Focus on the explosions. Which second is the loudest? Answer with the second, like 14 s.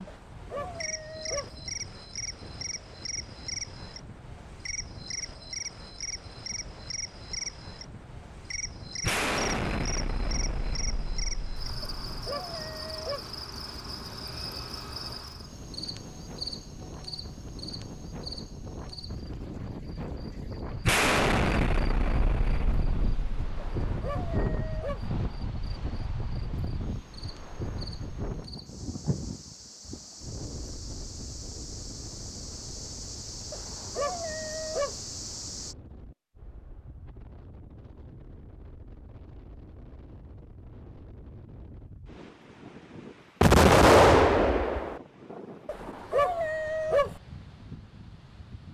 44 s.